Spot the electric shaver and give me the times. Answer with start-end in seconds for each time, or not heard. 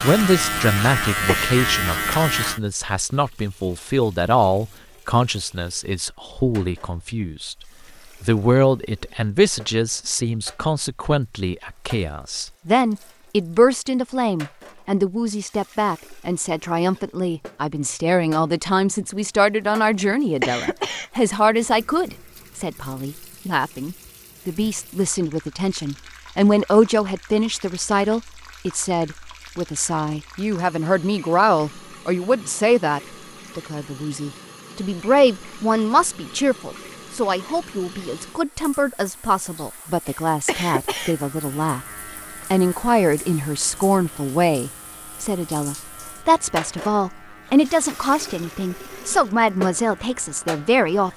0.0-2.6, 41.0-51.1.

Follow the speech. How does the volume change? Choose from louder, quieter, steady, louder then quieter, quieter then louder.
steady.